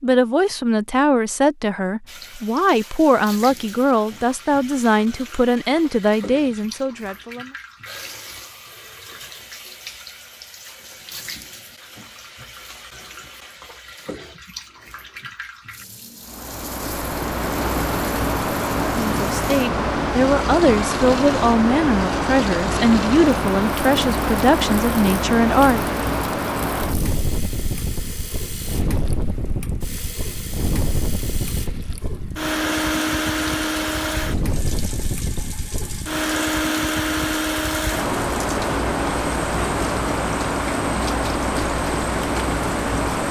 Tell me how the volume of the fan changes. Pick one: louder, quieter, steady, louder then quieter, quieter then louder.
quieter then louder.